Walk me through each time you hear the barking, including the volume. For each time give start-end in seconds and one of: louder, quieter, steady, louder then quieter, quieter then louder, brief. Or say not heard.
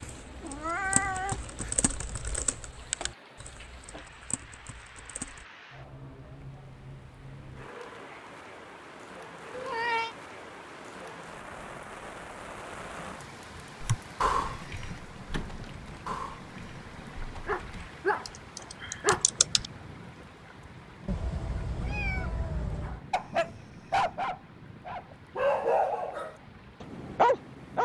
17.0-19.2 brief
22.9-27.8 quieter then louder.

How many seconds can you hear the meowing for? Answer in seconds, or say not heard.
4 s.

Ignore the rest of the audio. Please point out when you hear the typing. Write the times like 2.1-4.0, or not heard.
0.1-5.5, 13.8-19.7.